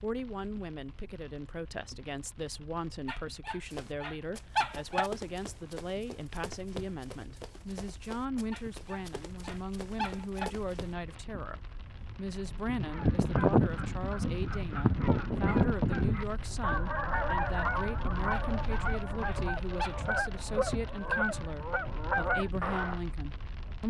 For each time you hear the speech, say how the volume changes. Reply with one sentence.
You can hear the speech from 0.0 to 23.8 s, at a steady volume.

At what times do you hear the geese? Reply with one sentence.
You can hear the geese from 12.7 to 23.0 s.